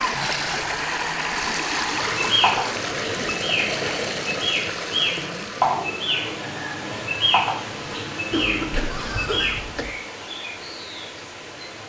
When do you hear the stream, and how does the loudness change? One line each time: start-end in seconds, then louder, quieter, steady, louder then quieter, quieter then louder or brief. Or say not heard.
0.0-11.8 quieter.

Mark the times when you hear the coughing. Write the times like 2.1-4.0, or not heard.
8.3-9.9.